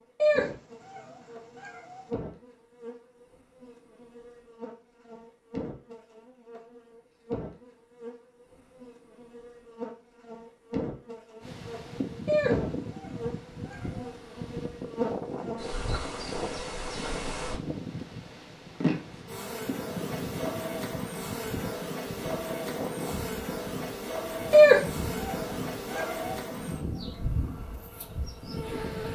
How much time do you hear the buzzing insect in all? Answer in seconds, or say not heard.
29 s.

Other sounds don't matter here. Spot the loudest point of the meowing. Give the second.
25 s.